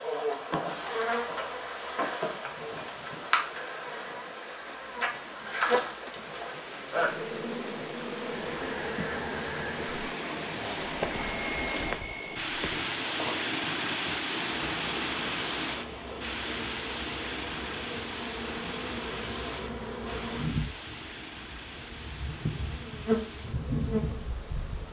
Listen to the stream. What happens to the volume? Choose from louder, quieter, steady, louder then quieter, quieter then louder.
louder then quieter.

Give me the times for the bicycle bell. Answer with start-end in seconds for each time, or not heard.
11.0-12.9.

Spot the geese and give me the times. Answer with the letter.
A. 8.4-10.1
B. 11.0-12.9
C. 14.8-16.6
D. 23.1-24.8
A.